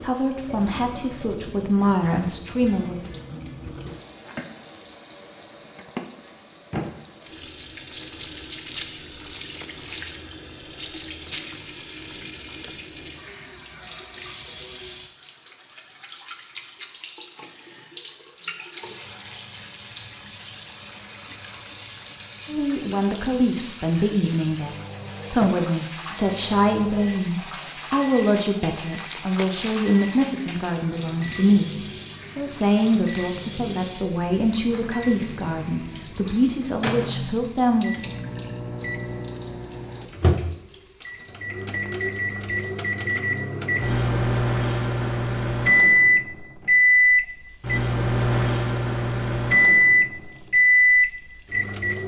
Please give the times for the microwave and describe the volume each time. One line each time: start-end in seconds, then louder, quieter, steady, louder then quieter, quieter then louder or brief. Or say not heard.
24.6-52.0 louder.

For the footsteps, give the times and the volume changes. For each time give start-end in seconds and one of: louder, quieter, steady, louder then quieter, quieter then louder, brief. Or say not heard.
not heard.